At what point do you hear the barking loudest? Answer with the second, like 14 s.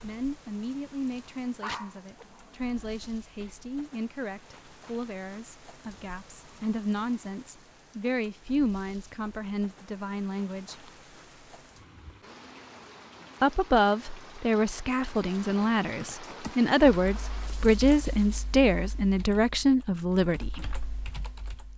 2 s.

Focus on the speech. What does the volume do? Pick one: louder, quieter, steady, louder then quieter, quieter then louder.
louder.